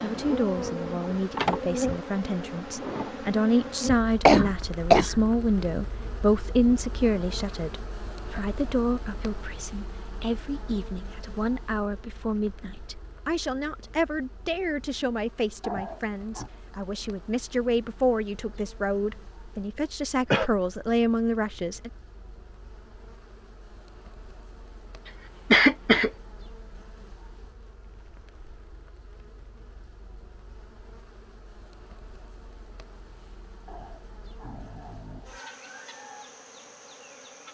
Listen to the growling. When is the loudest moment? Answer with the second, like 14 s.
16 s.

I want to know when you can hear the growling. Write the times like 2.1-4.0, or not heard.
15.6-16.5, 33.6-35.3.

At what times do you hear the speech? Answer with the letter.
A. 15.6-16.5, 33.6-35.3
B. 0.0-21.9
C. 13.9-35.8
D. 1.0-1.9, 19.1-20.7
B.